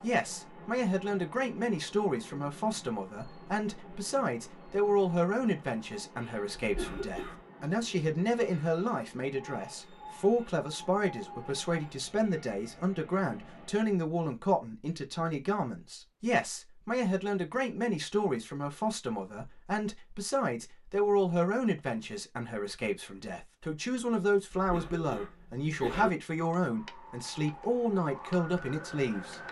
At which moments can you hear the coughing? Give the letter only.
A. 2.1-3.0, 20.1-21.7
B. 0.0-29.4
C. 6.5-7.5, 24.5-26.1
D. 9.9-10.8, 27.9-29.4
C.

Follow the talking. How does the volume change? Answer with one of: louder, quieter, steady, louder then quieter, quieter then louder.
steady.